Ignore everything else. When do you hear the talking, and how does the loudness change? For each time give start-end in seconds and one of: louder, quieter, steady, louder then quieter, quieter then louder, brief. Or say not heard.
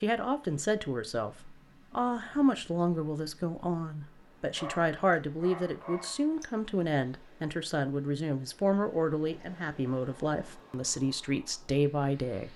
0.0-12.5 steady.